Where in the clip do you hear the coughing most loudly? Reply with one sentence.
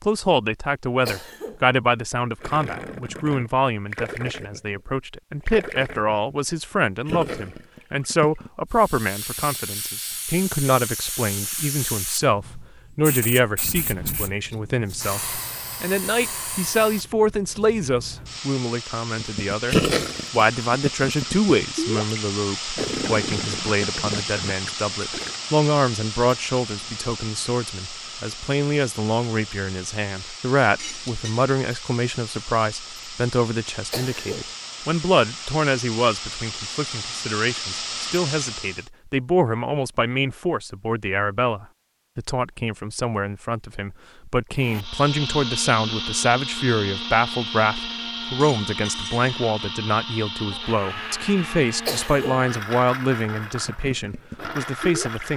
The loudest moment of the coughing is at 52 seconds.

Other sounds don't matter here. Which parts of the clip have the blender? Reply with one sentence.
The blender can be heard from 44.5 to 55.3 s.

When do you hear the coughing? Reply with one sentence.
You can hear the coughing from 1.1 to 1.6 s, from 33.9 to 34.5 s and from 51.9 to 52.5 s.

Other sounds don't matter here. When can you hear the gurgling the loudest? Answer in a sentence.
The volume of the gurgling peaks at 20 seconds.